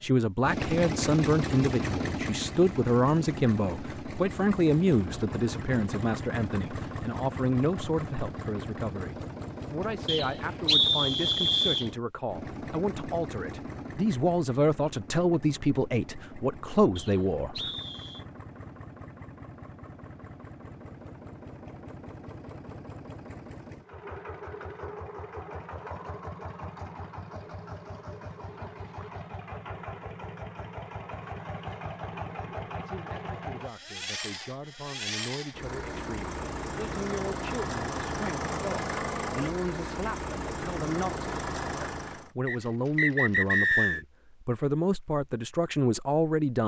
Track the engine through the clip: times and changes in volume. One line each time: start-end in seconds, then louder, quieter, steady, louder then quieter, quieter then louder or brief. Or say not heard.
0.0-42.3 quieter then louder.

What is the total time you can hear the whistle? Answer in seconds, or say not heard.
5 s.